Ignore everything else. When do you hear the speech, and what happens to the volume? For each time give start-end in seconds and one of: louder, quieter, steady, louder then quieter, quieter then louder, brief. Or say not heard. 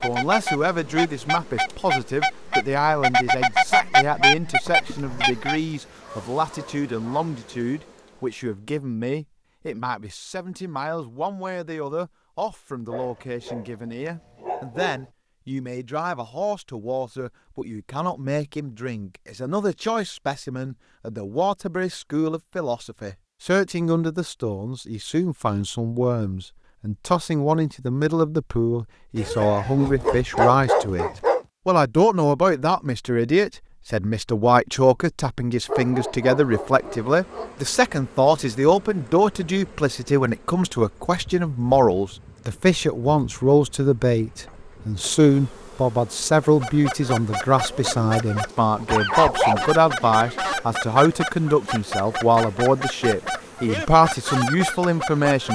0.0-55.4 louder.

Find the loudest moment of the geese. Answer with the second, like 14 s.
4 s.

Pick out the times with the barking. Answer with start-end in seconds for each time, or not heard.
4.7-7.3, 12.9-15.1, 29.1-31.4, 35.6-37.5, 48.7-50.5.